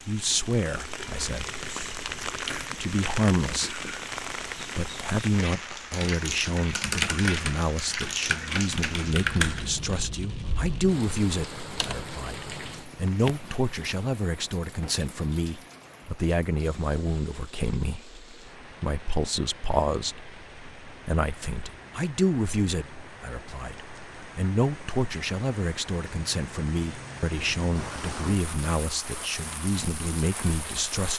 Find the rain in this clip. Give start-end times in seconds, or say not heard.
0.0-31.1.